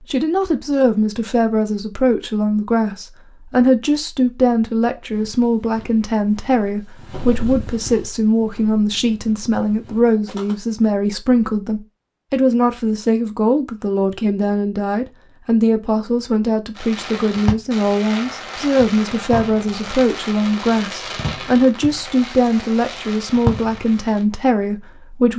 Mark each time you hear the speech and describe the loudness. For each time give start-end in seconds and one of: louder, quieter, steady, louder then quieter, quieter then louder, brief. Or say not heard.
0.0-25.3 steady.